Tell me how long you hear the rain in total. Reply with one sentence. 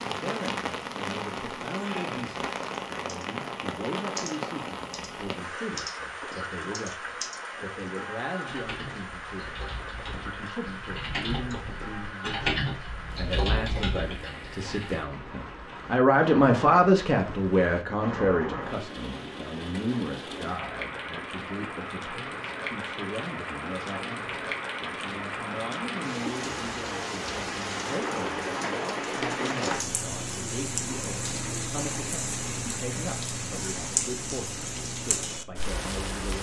You can hear the rain for 36 seconds altogether.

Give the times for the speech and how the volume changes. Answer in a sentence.
You can hear the speech from 0.0 to 36.3 s, getting louder then quieter.